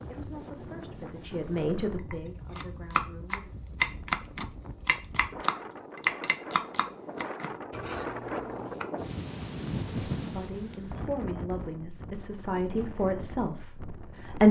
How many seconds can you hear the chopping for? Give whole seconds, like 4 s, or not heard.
7 s.